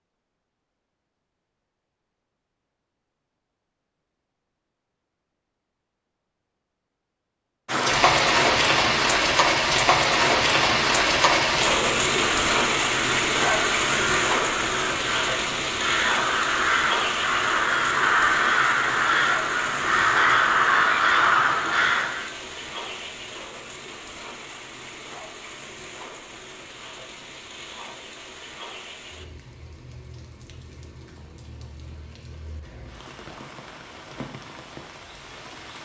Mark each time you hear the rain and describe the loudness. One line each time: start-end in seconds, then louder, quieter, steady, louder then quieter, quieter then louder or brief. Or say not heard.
7.7-35.7 quieter.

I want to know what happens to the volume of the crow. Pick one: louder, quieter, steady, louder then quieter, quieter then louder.
louder.